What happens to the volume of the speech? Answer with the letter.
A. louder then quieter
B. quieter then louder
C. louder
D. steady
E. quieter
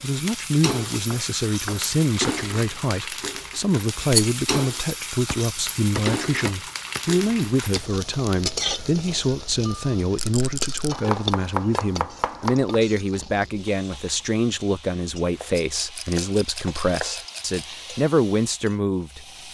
D.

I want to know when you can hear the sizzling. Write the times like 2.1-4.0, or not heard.
0.0-19.4.